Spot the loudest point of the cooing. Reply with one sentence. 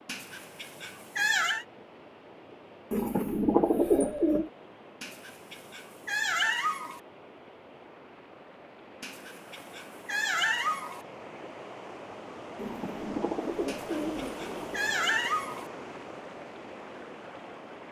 The loudest moment of the cooing is at 4 seconds.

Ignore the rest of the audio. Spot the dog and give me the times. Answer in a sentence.
The dog can be heard from 0.1 to 1.6 s, from 5.0 to 7.0 s, from 9.0 to 11.0 s and from 13.7 to 15.7 s.